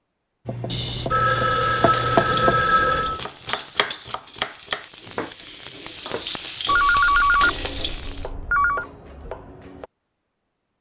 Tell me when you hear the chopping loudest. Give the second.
2 s.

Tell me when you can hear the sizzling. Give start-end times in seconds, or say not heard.
1.8-8.3.